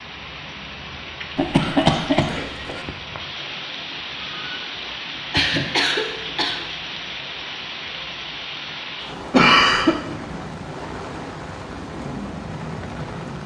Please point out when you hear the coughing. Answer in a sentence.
The coughing can be heard from 1.4 to 2.8 s, from 5.3 to 6.6 s and from 9.3 to 9.9 s.